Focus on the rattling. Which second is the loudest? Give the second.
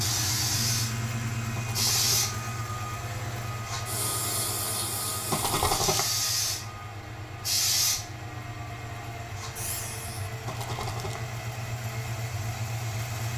6 s.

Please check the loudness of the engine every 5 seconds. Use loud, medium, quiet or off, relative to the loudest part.
loud, medium, loud.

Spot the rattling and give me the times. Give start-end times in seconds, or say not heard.
1.6-2.3, 5.3-6.0, 10.4-11.2.